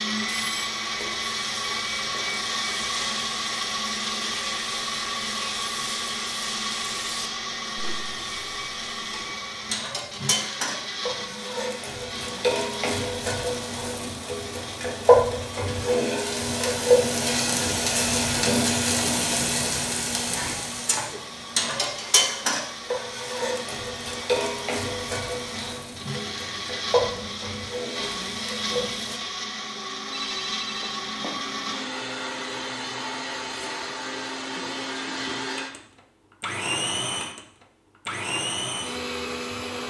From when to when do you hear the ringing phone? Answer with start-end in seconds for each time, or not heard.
30.1-31.4.